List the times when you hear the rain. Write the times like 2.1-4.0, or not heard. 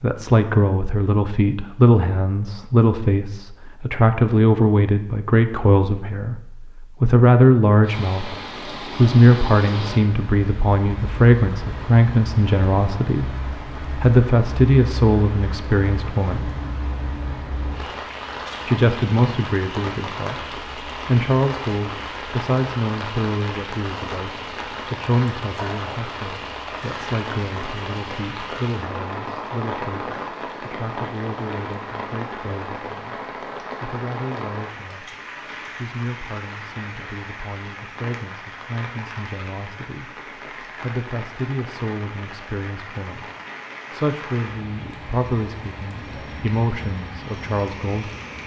7.8-48.4.